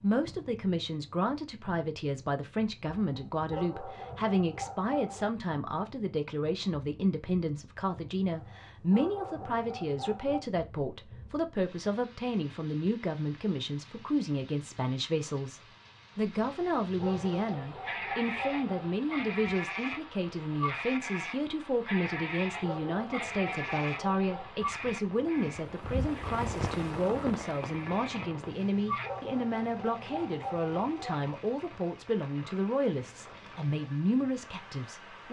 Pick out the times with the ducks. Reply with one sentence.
The ducks can't be heard in this clip.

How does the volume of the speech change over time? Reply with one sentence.
The volume of the speech stays about the same.